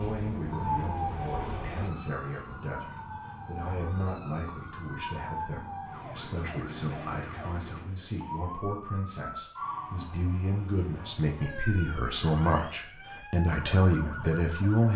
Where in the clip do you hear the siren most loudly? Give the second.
1 s.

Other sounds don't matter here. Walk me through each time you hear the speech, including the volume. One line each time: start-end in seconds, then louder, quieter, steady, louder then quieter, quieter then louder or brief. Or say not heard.
0.0-14.9 louder.